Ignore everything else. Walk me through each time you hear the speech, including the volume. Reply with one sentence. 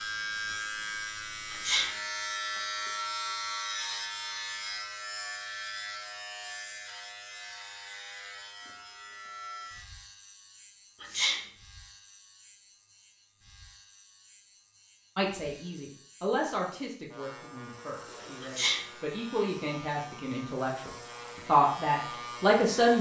The speech can be heard from 15.2 to 22.9 s, getting quieter then louder.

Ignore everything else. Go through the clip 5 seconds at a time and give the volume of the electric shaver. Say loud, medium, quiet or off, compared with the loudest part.
loud, medium, quiet, quiet, medium.